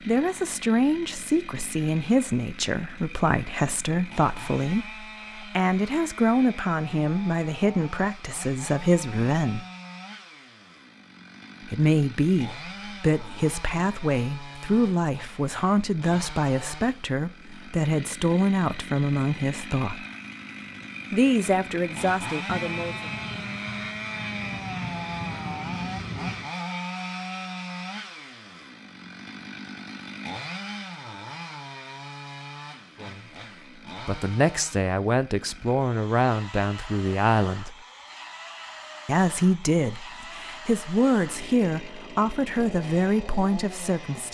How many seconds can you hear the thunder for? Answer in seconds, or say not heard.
4 s.